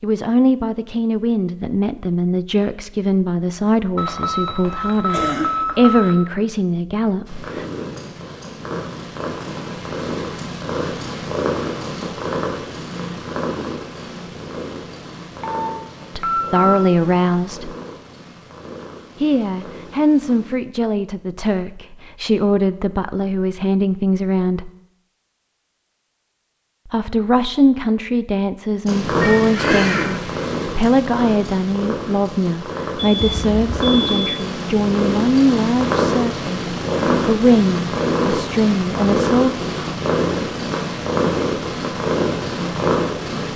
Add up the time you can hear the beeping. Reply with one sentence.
The beeping can be heard for 5 seconds in total.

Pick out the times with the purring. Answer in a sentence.
The purring can be heard from 7.2 to 20.6 s and from 28.9 to 43.5 s.